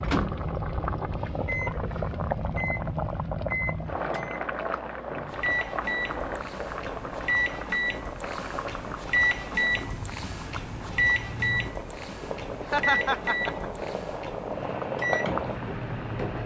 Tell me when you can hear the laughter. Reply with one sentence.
The laughter can be heard from 12.6 to 13.7 s.